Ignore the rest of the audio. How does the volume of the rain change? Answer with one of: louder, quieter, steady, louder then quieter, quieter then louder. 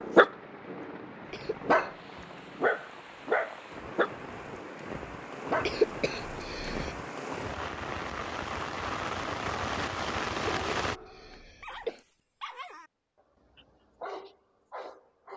louder.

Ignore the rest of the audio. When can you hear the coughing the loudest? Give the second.
6 s.